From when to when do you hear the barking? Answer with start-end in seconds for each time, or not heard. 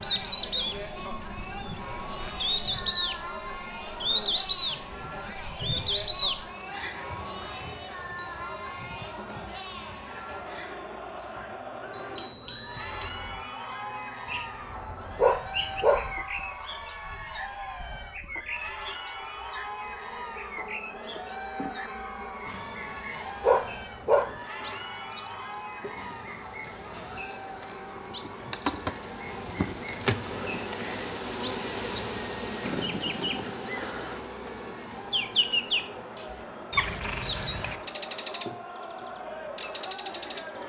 15.2-16.1, 23.4-24.4.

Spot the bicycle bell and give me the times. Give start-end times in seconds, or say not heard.
12.2-13.2.